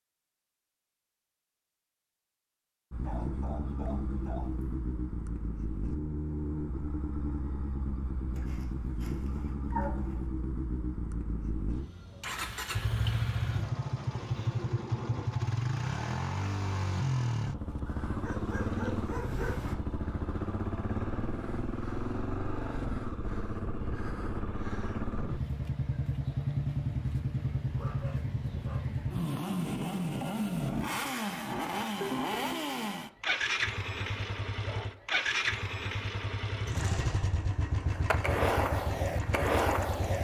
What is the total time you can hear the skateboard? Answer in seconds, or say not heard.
2 s.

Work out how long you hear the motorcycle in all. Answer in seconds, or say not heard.
37 s.